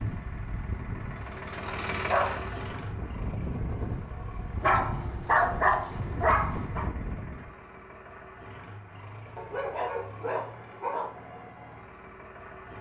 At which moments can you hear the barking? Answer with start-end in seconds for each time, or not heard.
1.9-2.4, 4.6-6.8, 9.3-11.1.